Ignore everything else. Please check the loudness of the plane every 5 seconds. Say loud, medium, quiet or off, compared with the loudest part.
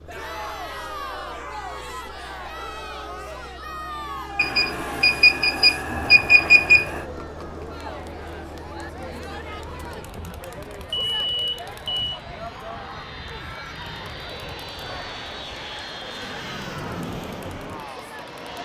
quiet, medium, medium, loud.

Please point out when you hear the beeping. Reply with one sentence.
You can hear the beeping from 4.3 to 7.0 s and from 10.9 to 12.1 s.